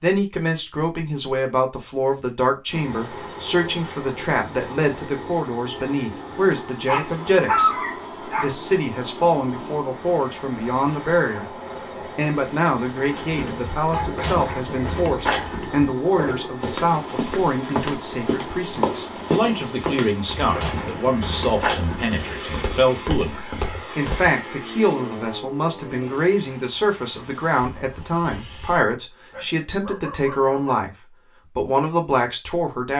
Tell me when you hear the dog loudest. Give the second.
8 s.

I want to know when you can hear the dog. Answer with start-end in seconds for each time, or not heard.
6.8-8.6, 13.9-15.6, 29.3-30.8.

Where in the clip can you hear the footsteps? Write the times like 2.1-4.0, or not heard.
13.1-24.3.